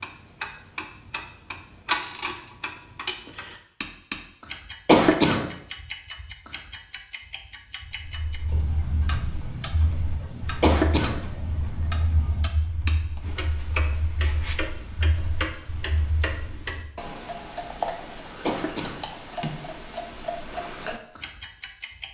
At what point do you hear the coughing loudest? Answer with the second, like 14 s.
5 s.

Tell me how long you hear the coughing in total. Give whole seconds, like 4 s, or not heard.
2 s.